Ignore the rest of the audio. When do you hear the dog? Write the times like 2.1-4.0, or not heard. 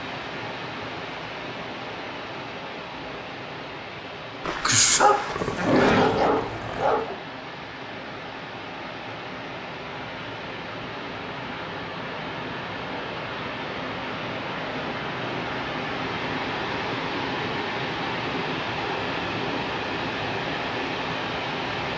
4.4-7.2.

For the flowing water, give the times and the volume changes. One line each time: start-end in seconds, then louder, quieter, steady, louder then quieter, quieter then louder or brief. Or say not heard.
0.0-21.9 louder.